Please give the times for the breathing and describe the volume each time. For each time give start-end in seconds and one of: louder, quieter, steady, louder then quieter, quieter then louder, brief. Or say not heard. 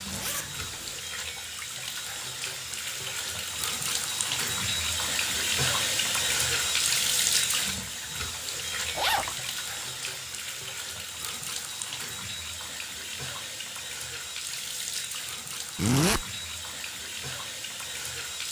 not heard.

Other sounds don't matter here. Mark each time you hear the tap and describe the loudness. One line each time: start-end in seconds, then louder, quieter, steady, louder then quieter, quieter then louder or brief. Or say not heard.
0.0-18.4 louder then quieter.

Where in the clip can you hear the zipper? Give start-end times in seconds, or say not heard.
0.1-0.9, 8.9-9.3, 15.8-16.2.